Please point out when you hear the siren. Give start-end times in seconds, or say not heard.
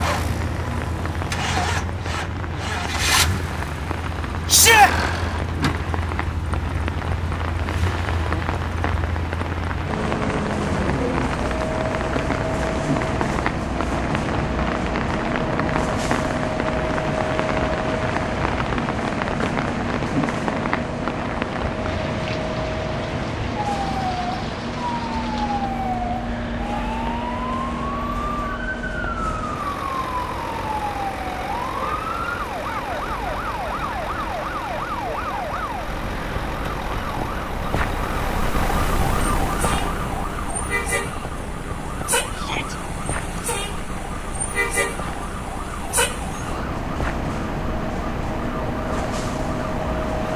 23.6-50.3.